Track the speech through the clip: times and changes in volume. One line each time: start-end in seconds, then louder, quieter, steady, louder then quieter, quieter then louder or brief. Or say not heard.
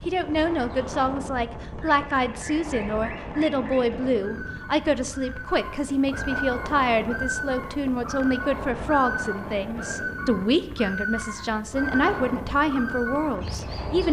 0.1-14.0 steady.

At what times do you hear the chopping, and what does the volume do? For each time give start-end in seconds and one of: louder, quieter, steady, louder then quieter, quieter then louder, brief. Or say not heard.
not heard.